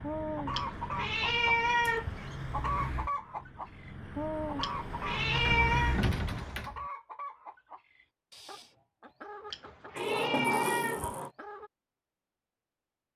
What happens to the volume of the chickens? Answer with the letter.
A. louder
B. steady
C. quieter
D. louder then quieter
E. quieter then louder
C.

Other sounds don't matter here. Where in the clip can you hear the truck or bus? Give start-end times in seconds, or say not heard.
0.0-6.7.